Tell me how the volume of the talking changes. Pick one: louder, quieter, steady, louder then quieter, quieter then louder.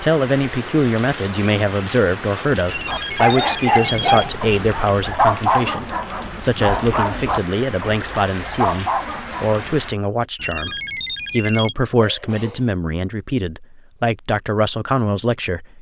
steady.